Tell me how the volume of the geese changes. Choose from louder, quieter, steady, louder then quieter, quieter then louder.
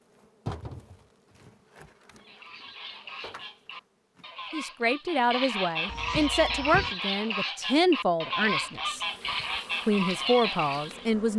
louder.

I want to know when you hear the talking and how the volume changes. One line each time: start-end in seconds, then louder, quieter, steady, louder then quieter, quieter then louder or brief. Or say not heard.
4.5-9.0 steady
9.8-11.3 brief.